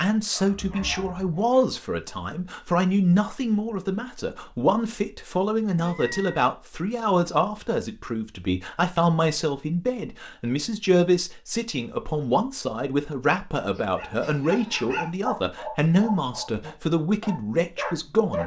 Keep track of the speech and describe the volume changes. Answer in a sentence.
The volume of the speech stays about the same.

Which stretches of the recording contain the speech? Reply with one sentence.
The speech can be heard from 0.0 to 18.4 s.